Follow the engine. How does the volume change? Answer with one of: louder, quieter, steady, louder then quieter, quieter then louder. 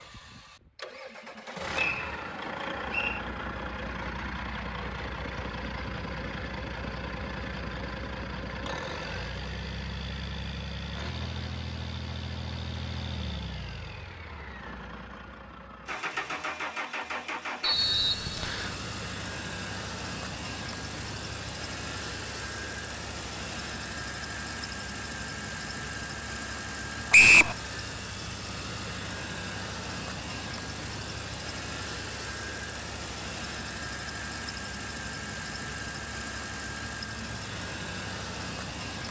steady.